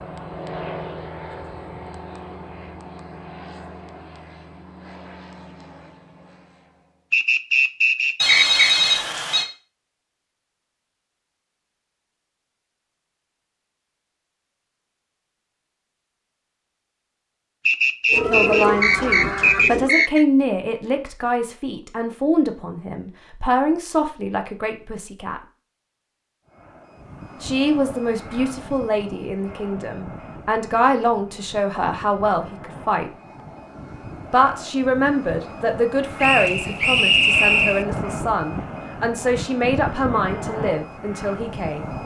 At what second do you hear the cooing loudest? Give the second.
19 s.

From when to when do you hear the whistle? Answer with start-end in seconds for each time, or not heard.
7.1-8.6, 17.6-20.2, 36.2-37.9.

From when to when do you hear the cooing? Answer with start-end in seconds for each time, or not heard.
18.1-19.9.